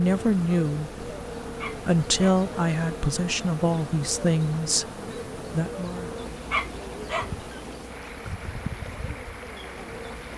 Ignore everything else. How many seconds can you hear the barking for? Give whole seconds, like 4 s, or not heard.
2 s.